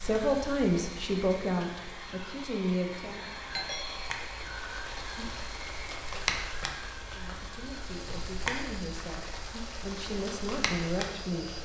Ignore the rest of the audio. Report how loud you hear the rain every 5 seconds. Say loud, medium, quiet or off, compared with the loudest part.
medium, loud, loud.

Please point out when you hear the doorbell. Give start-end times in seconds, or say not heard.
3.5-4.1.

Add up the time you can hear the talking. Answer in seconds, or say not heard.
8 s.